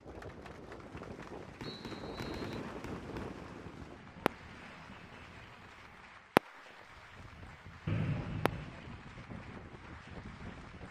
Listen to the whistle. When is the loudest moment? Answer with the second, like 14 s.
8 s.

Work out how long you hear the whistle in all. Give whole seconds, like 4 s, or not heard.
2 s.